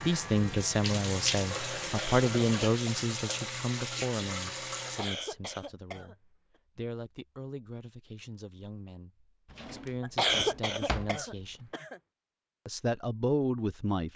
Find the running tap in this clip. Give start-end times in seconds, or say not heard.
0.0-5.2.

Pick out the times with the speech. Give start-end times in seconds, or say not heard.
0.0-11.7, 12.7-14.1.